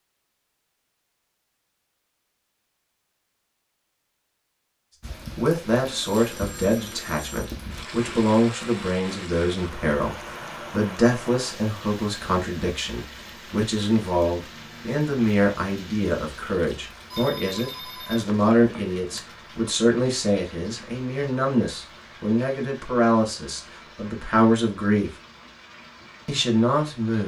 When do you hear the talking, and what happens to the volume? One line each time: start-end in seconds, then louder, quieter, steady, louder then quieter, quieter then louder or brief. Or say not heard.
5.3-25.1 steady
26.2-27.2 brief.